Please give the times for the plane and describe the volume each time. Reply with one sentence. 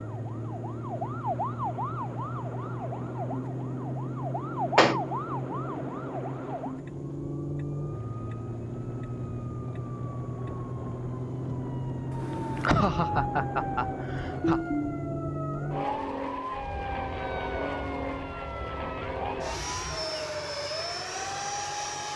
The plane can be heard from 0.0 to 22.1 s, at a steady volume.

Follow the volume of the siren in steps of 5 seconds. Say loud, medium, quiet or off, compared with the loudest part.
loud, medium, loud, loud, loud.